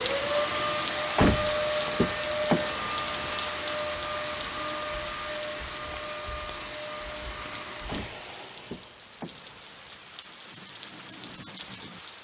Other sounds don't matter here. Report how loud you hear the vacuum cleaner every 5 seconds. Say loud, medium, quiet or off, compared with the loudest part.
loud, medium, off.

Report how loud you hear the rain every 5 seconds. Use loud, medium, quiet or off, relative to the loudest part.
loud, medium, medium.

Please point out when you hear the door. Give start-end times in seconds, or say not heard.
1.1-3.3, 7.8-10.0.